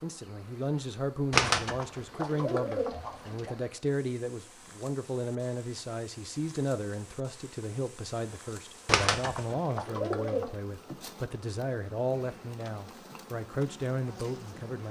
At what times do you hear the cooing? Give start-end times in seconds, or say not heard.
1.3-3.5, 8.8-10.5.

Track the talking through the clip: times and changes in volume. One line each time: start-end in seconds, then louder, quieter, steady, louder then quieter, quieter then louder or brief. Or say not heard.
0.0-14.8 steady.